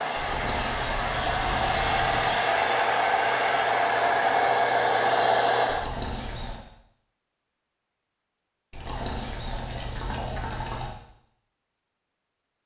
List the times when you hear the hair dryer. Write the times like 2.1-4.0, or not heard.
0.0-5.9.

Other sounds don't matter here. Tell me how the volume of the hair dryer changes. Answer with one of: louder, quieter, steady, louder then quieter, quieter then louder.
louder.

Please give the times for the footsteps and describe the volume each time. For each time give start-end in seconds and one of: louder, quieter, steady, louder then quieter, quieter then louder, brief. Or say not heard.
not heard.